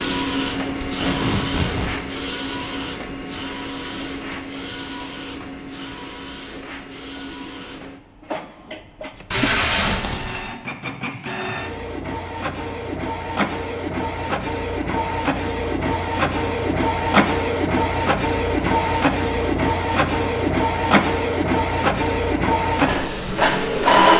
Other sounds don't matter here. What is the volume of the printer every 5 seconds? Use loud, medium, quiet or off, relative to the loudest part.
medium, quiet, medium, loud, loud.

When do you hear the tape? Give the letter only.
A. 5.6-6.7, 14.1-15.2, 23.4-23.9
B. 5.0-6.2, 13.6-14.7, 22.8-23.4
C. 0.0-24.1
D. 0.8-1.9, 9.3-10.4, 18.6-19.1
D.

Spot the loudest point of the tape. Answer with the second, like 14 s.
10 s.